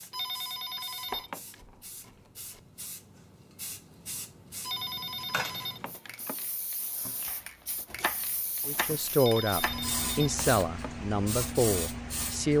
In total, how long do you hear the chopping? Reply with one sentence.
The chopping can be heard for 4 seconds in total.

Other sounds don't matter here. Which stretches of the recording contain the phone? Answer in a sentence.
You can hear the phone from 0.1 to 1.6 s, from 4.6 to 6.5 s and from 9.2 to 10.9 s.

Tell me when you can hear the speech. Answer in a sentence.
The speech can be heard from 8.7 to 12.5 s.